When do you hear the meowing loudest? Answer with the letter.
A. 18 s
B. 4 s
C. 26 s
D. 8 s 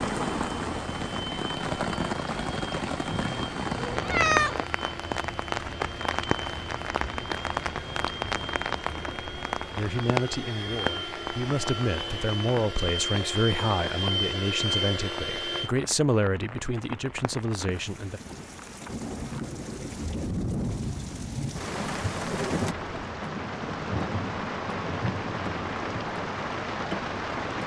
B.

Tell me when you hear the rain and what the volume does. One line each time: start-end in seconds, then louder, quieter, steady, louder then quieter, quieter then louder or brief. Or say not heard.
0.0-27.6 quieter then louder.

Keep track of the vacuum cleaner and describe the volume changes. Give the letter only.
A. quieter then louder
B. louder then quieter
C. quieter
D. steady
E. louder
E.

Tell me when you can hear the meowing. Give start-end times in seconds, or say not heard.
3.0-4.5.